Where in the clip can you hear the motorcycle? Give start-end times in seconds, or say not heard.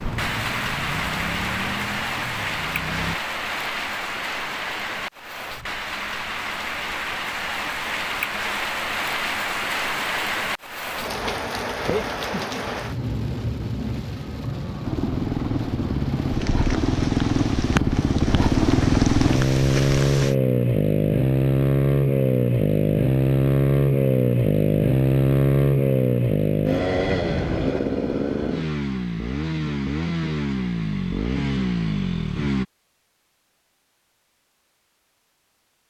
0.0-3.1, 14.8-32.6.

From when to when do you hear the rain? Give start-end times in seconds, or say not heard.
0.0-20.4.